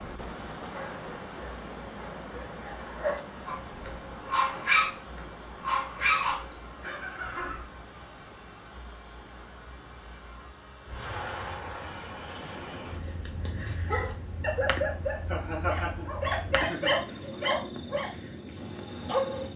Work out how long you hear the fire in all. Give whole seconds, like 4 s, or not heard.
not heard.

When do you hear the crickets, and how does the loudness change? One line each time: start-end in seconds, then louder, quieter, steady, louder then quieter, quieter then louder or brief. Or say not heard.
0.0-19.5 louder.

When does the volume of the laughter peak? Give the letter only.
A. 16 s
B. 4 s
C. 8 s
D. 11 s
A.